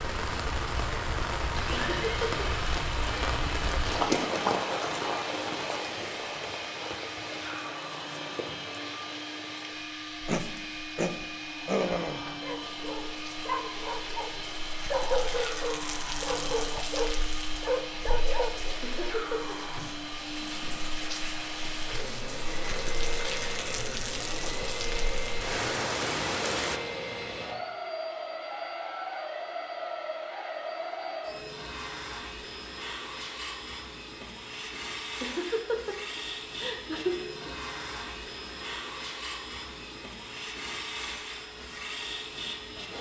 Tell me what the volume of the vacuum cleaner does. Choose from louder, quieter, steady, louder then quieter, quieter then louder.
steady.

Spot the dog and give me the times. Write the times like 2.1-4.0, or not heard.
10.2-19.1.